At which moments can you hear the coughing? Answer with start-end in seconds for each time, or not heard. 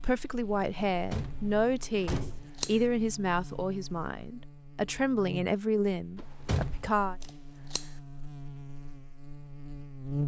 not heard.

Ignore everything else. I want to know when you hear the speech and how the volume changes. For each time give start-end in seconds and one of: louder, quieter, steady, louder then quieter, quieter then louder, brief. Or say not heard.
0.0-7.2 steady.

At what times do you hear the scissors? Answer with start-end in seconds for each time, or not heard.
2.1-2.8, 7.2-7.9.